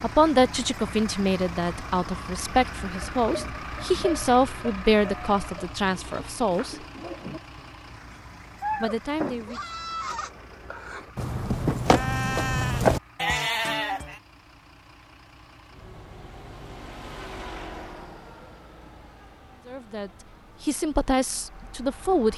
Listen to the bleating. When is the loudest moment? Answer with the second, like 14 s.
13 s.